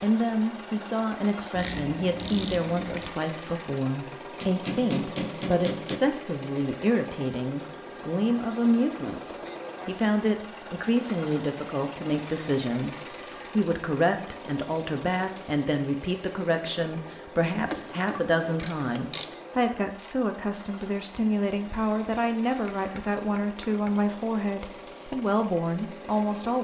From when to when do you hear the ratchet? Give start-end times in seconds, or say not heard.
1.5-3.1, 17.6-19.4.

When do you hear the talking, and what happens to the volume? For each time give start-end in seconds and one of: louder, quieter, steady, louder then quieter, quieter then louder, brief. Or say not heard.
0.0-26.5 steady.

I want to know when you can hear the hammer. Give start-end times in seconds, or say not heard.
4.4-6.0, 22.4-24.1.